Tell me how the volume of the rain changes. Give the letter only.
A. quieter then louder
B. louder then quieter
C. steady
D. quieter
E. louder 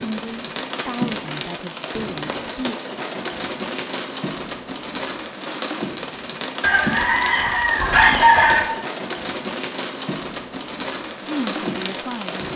C.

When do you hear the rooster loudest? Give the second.
8 s.